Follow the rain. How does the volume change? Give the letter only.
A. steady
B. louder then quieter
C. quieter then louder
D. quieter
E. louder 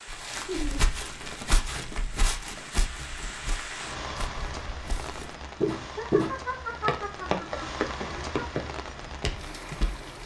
E.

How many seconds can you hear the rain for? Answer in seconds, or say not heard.
10 s.